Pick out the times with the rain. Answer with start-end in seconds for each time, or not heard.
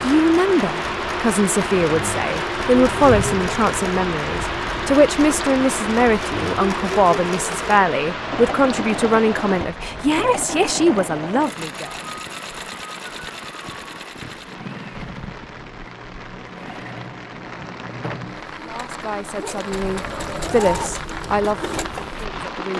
0.0-22.7.